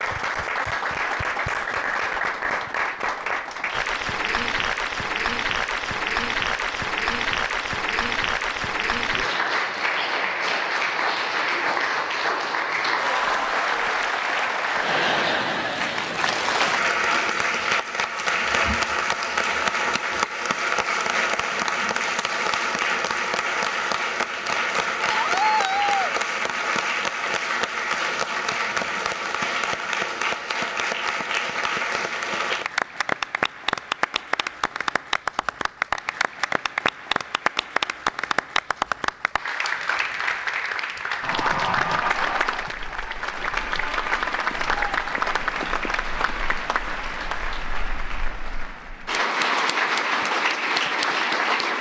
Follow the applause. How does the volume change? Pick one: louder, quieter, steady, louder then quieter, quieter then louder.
steady.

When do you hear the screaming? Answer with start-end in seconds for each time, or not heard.
25.1-26.1.